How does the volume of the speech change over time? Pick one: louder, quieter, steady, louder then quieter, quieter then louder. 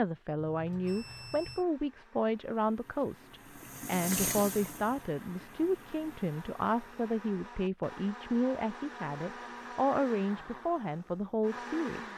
steady.